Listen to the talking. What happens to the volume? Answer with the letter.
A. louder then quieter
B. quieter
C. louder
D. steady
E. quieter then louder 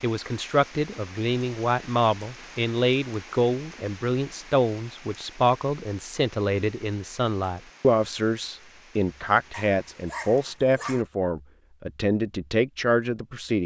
D.